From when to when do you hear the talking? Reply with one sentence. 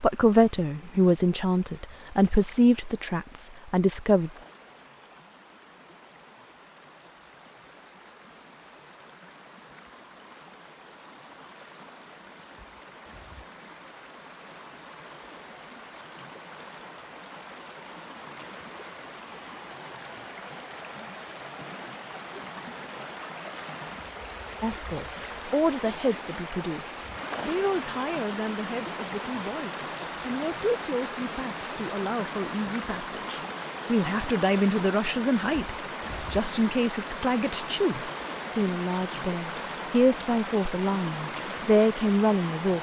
You can hear the talking from 0.0 to 4.3 s and from 24.6 to 42.7 s.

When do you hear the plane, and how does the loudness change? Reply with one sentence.
You can't hear the plane here.